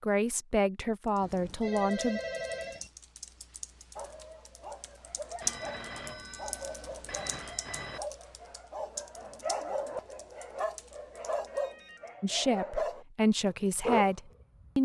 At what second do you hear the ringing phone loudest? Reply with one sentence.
The loudest moment of the ringing phone is at 2 seconds.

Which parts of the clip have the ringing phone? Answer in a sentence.
You can hear the ringing phone from 1.2 to 2.9 s, from 5.4 to 8.0 s and from 11.3 to 12.1 s.